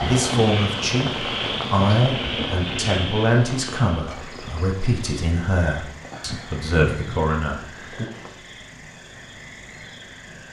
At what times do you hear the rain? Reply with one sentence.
The rain can be heard from 0.0 to 8.3 s.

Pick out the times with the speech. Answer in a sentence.
The speech can be heard from 0.0 to 8.1 s.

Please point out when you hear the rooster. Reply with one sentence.
The rooster can't be heard in this clip.